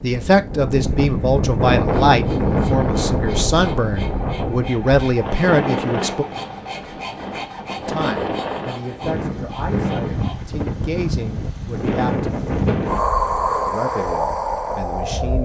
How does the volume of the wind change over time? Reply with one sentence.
The loudness of the wind goes down, then up.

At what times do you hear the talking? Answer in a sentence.
You can hear the talking from 0.0 to 6.2 s, from 7.8 to 12.3 s and from 13.7 to 15.4 s.